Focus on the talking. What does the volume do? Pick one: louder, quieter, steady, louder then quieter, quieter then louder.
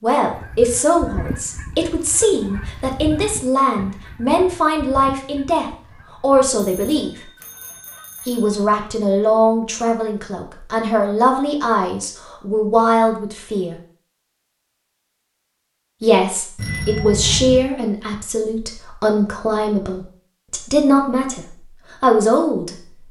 steady.